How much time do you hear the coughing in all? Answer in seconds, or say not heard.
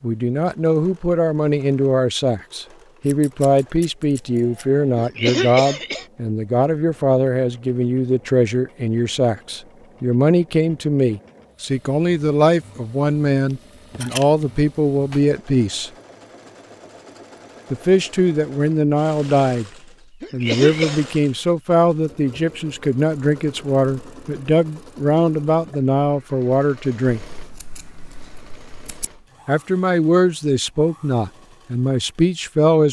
2 s.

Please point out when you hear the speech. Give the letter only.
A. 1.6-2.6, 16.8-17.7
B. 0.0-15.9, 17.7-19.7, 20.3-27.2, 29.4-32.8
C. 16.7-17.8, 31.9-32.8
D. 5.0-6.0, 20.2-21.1
B.